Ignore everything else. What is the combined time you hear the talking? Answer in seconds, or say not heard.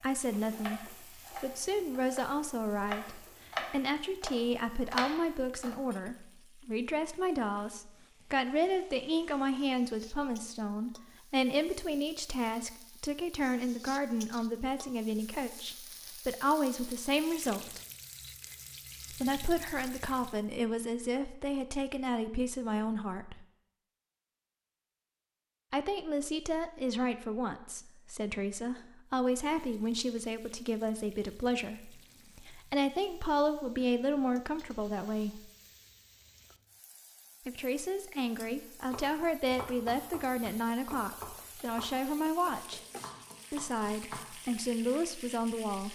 40 s.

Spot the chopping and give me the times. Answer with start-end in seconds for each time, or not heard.
0.0-5.8, 38.4-45.0.